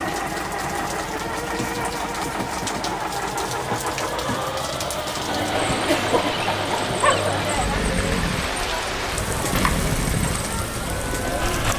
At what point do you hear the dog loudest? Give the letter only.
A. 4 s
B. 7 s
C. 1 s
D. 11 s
B.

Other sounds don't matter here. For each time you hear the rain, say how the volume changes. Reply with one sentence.
The rain can be heard from 0.0 to 11.7 s, getting louder.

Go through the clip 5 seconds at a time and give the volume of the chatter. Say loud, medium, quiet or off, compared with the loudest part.
off, loud, loud.